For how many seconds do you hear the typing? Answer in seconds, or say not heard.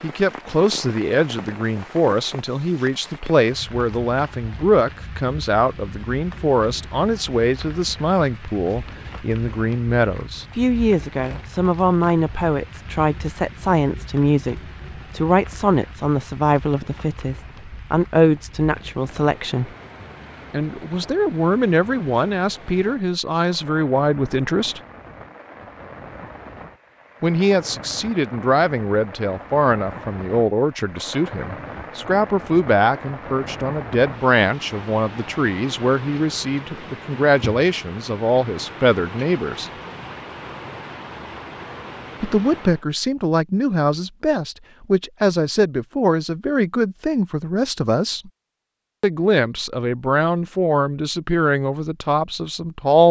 not heard.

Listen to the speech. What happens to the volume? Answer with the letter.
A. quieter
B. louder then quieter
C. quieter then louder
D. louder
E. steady
E.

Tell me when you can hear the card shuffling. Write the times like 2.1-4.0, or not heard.
not heard.